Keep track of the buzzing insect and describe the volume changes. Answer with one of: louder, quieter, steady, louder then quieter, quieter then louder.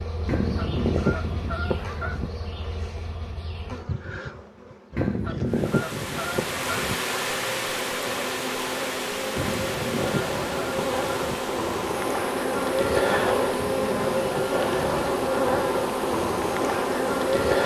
louder.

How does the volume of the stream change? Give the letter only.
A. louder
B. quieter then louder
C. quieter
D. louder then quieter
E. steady
C.